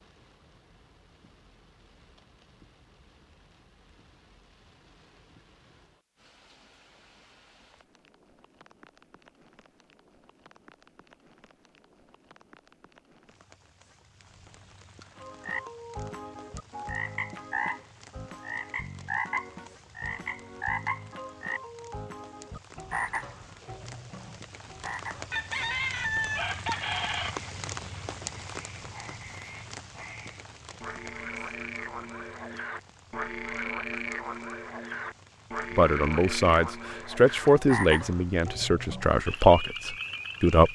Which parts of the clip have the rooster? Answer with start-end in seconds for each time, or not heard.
25.3-27.4.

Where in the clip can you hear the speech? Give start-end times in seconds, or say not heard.
35.8-40.7.